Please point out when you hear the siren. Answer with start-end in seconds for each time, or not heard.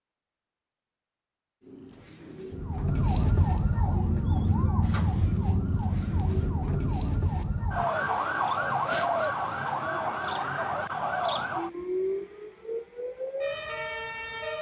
2.5-14.5.